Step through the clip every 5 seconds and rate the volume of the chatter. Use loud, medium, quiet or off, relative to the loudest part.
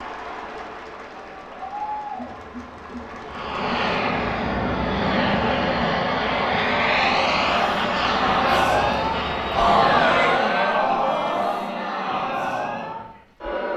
medium, loud, loud.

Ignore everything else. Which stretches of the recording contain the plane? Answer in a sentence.
You can hear the plane from 3.3 to 10.5 s.